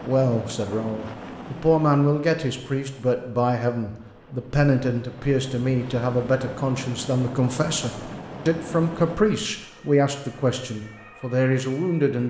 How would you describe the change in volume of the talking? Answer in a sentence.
The volume of the talking stays about the same.